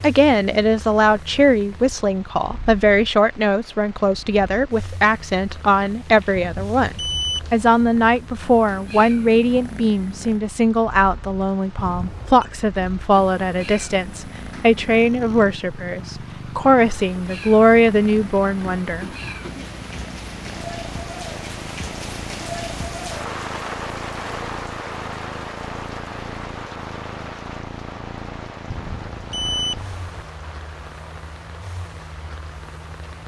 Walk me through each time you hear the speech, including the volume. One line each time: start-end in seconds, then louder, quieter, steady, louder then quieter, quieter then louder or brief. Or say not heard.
0.0-19.6 steady.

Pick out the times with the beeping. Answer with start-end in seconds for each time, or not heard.
6.3-8.1, 11.8-12.4, 28.7-30.2.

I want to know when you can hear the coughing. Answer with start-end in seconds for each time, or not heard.
not heard.